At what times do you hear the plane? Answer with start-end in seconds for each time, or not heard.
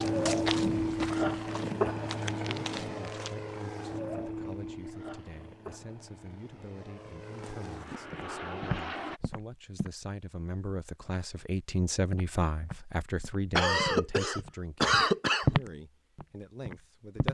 0.0-9.2.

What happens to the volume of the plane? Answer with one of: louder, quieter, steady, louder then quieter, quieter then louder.
quieter then louder.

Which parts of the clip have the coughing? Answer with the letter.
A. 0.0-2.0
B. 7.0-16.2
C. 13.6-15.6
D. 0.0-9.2
C.